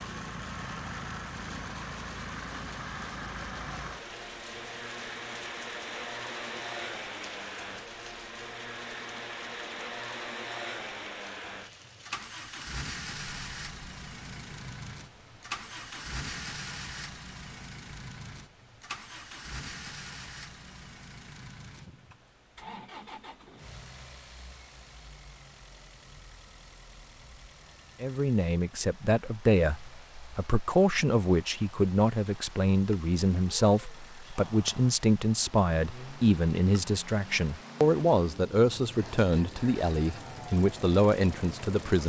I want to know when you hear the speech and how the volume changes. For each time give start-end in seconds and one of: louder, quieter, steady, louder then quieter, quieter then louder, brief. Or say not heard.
28.0-42.0 steady.